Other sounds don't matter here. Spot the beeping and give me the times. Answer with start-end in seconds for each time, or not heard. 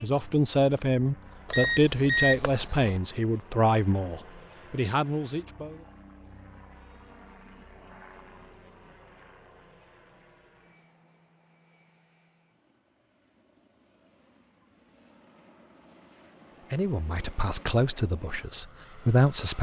1.4-3.0.